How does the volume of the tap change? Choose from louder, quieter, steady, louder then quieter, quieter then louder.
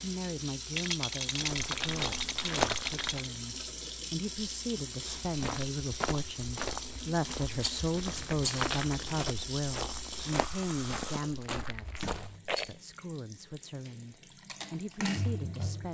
steady.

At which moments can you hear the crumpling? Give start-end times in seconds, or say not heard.
1.2-3.1, 8.1-9.2.